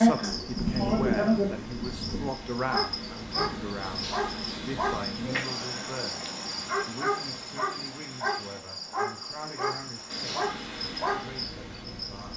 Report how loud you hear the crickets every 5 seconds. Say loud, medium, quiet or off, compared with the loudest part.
loud, medium, medium.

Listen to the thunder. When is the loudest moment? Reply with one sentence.
The loudest moment of the thunder is at 1 second.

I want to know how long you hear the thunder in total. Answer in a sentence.
You can hear the thunder for 2 seconds altogether.